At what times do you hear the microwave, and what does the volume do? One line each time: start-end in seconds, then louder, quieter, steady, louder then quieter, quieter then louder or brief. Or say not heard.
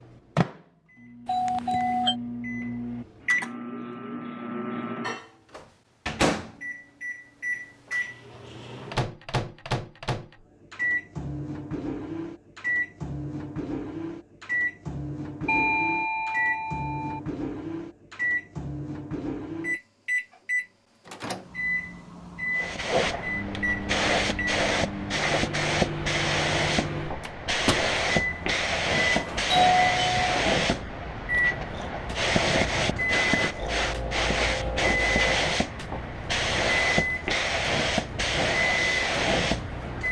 0.0-40.0 steady.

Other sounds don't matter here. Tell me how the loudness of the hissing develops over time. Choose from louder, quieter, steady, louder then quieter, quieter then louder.
steady.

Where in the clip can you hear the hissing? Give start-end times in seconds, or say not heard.
22.6-40.0.